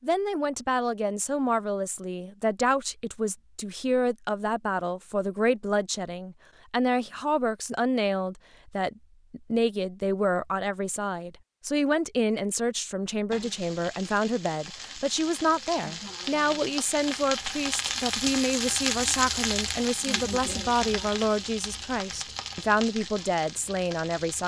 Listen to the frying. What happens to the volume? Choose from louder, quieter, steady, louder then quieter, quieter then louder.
louder then quieter.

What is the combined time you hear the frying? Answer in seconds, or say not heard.
11 s.